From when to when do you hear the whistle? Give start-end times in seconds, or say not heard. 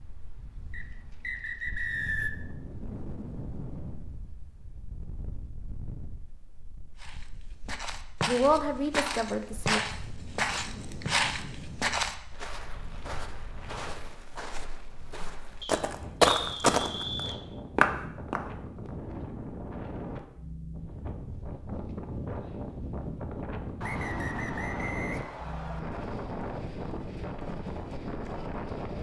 0.7-2.3, 15.6-17.4, 23.8-25.8.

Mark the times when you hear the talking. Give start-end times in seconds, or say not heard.
8.2-9.8.